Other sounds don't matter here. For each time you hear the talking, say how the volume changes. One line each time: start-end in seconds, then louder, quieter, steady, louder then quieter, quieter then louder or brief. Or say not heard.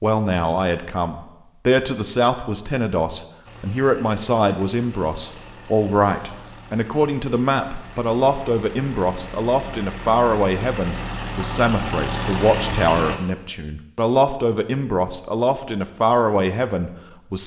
0.0-17.4 steady.